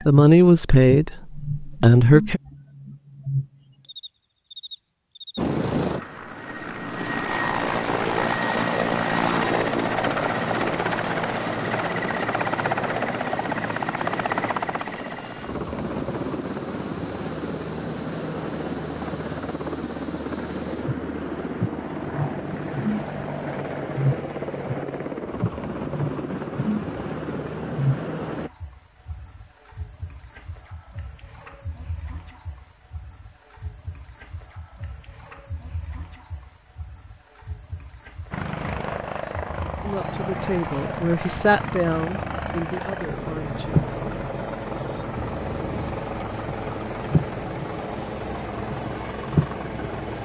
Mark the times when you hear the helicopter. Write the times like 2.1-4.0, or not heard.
5.3-28.5, 38.3-50.2.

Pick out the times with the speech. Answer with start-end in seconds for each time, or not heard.
0.1-2.4, 39.8-43.7.